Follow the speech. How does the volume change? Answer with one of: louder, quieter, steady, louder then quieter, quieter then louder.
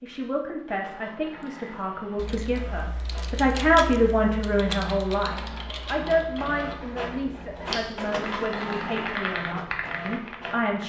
louder then quieter.